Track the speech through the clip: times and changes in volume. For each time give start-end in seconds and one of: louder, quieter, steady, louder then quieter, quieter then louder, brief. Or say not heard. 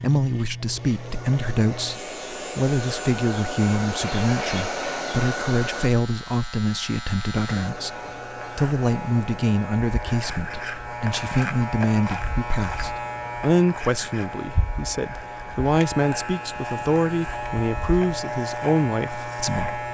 0.0-8.0 steady
8.6-19.8 steady.